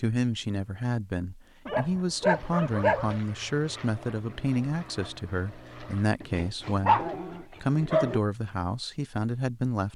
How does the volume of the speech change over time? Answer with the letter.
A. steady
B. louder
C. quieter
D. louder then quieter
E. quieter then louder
A.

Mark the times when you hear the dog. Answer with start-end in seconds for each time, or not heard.
1.6-3.2, 6.2-8.2.